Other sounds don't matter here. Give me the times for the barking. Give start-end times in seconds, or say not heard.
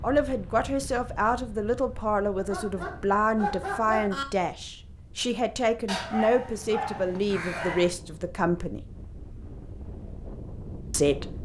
2.4-4.2, 5.8-7.9.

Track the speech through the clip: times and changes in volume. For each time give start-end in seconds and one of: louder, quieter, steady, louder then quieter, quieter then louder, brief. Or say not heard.
0.0-8.8 steady
10.9-11.4 brief.